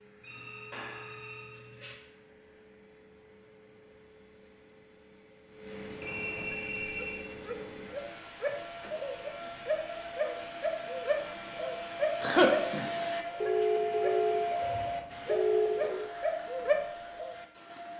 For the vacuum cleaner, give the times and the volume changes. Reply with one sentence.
The vacuum cleaner can be heard from 0.0 to 17.9 s, getting louder.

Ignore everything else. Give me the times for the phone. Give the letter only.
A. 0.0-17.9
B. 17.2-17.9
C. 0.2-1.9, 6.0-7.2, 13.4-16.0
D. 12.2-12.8
C.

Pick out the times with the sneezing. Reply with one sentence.
The sneezing can be heard from 12.2 to 12.8 s.